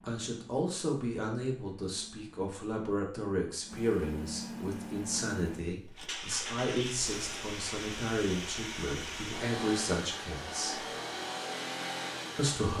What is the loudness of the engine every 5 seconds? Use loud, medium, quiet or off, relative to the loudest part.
medium, loud, loud.